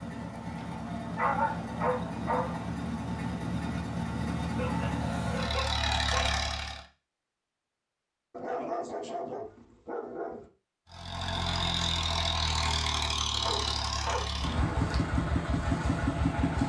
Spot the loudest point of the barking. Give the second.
1 s.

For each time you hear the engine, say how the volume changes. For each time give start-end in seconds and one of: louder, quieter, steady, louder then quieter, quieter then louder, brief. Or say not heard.
0.0-6.8 louder
10.9-16.6 steady.